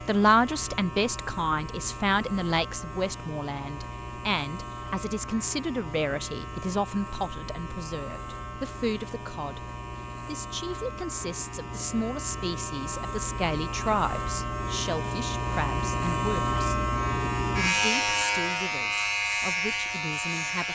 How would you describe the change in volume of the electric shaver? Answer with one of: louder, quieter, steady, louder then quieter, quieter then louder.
louder.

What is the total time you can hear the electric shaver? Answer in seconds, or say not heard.
21 s.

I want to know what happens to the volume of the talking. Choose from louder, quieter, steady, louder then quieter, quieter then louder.
quieter.